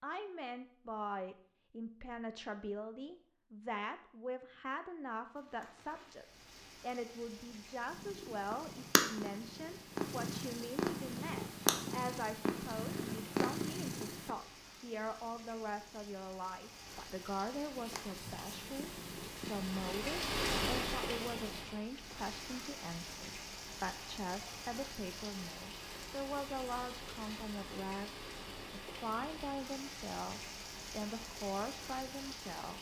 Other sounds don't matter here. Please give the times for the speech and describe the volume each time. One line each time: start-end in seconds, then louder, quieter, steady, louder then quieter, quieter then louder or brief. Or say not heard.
0.0-32.7 steady.